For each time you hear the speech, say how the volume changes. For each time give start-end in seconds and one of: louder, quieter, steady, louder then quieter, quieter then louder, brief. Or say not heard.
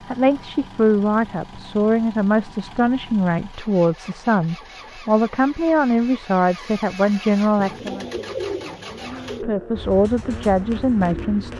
0.1-8.1 steady
9.4-11.5 brief.